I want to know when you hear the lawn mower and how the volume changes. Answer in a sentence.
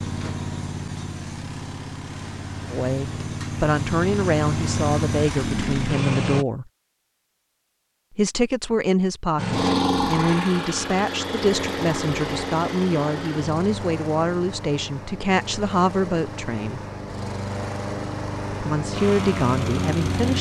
You can hear the lawn mower from 0.0 to 6.5 s, getting louder; and from 9.3 to 20.3 s, getting quieter then louder.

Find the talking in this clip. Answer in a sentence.
You can hear the talking from 2.7 to 6.7 s, from 8.2 to 16.8 s and from 18.6 to 20.3 s.